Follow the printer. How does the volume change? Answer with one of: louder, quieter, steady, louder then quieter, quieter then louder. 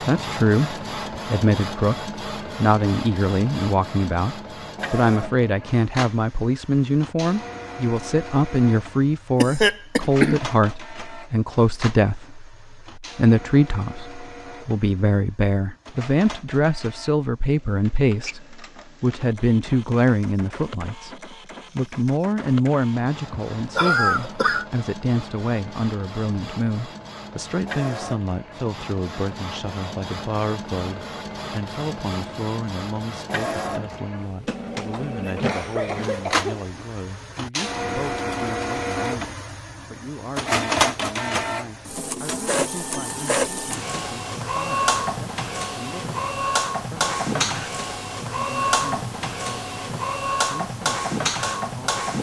quieter then louder.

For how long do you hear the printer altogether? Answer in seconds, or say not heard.
52 s.